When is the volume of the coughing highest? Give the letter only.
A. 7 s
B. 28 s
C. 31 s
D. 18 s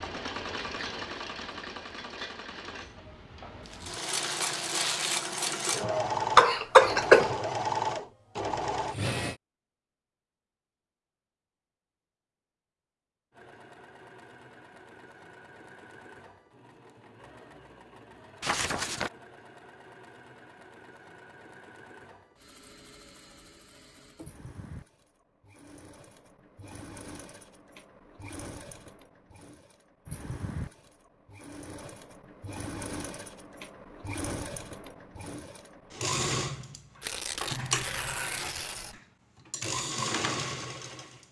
A.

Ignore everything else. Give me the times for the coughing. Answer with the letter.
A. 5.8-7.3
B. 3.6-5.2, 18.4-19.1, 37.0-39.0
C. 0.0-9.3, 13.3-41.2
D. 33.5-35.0
A.